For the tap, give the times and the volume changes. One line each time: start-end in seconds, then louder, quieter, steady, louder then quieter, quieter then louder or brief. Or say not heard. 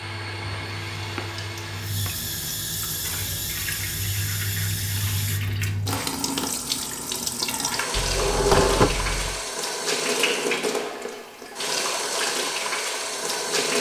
0.0-13.7 louder.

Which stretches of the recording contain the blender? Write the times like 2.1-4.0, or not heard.
0.0-2.5.